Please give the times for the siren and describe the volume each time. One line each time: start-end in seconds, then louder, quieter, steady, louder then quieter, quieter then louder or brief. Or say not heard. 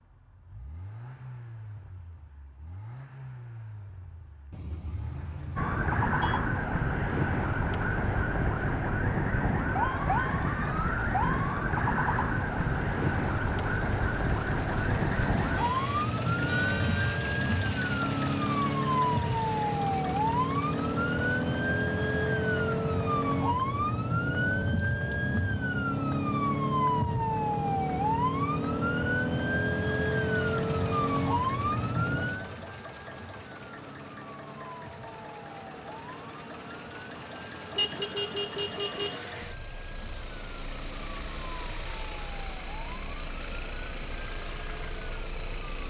5.5-45.8 quieter.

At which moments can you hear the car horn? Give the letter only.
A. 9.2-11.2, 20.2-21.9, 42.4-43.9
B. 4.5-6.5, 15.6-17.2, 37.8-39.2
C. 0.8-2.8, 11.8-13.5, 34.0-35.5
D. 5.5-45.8
B.